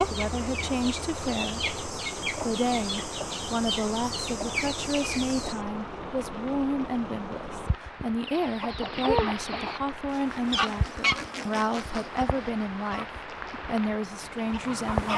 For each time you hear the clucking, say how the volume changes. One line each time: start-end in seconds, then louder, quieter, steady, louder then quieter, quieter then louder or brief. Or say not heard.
0.0-5.6 louder
8.2-15.1 quieter.